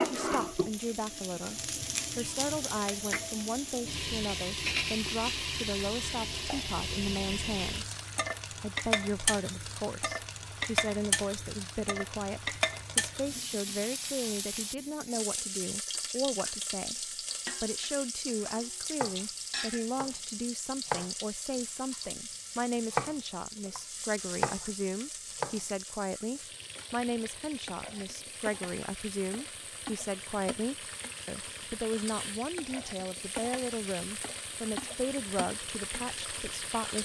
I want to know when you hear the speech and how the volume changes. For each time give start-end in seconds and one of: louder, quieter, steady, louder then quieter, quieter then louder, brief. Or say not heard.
0.0-37.0 steady.